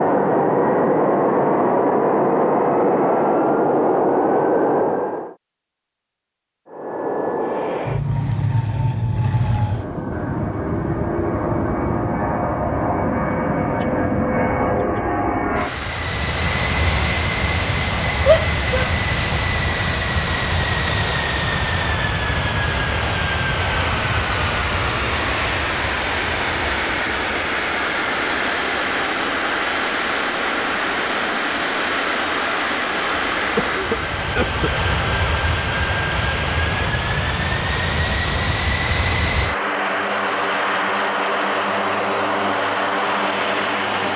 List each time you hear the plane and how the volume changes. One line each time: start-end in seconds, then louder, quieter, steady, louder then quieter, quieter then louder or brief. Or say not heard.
0.0-5.3 steady
6.7-44.1 steady.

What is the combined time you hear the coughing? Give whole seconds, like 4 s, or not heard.
2 s.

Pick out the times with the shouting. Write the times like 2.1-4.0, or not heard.
18.2-18.9.